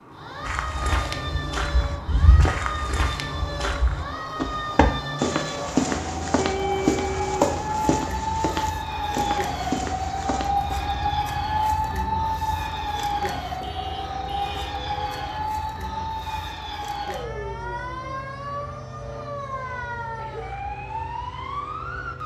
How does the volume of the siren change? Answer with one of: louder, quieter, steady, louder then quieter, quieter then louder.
louder then quieter.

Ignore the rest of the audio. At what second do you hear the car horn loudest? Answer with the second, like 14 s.
7 s.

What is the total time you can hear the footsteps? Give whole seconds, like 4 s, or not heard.
10 s.